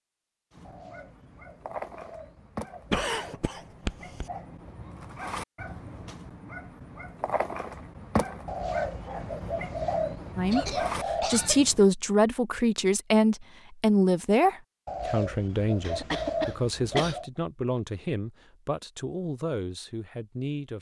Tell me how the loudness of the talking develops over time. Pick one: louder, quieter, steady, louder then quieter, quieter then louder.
quieter.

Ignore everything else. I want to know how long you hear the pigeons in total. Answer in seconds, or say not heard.
8 s.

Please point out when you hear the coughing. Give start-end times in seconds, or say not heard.
2.9-4.2, 10.5-11.7, 15.8-17.2.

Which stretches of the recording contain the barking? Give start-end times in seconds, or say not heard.
0.5-11.8.